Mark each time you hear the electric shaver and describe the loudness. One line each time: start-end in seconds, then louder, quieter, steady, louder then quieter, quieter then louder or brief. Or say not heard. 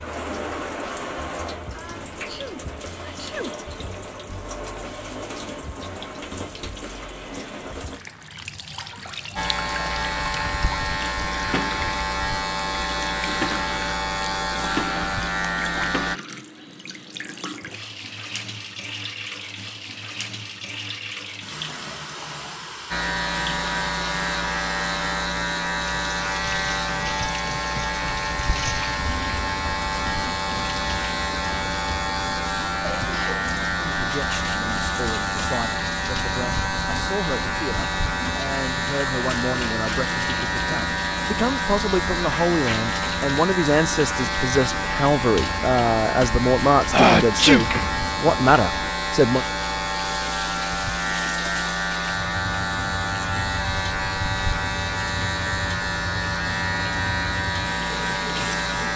9.3-16.2 steady
22.9-58.9 steady.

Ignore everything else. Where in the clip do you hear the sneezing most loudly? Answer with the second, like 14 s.
47 s.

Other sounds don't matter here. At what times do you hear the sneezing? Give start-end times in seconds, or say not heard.
1.7-3.5, 32.8-33.5, 46.9-47.6.